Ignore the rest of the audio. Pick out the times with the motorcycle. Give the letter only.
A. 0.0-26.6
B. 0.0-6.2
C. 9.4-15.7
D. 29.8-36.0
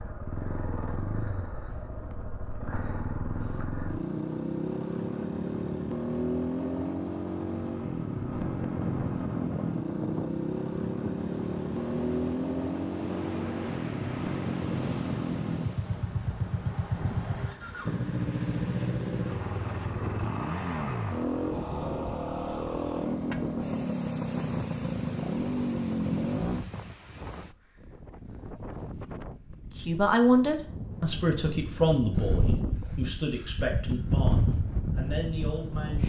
A.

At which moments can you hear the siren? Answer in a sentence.
The siren can't be heard in this clip.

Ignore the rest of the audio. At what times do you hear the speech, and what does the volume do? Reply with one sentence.
The speech can be heard from 29.8 to 36.0 s, getting quieter.